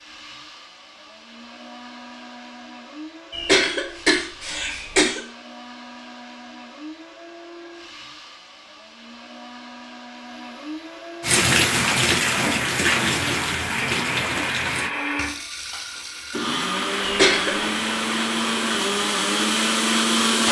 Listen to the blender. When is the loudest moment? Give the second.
20 s.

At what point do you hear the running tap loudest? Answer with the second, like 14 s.
12 s.